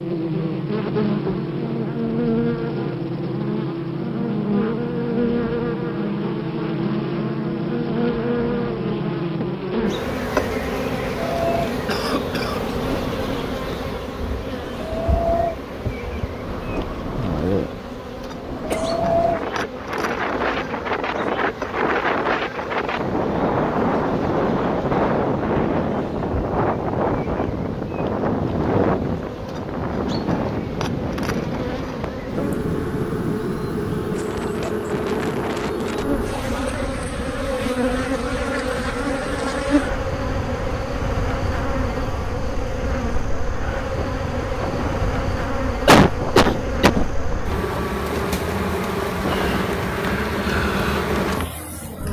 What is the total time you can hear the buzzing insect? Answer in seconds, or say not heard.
52 s.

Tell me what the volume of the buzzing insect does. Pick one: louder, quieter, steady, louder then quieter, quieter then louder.
quieter then louder.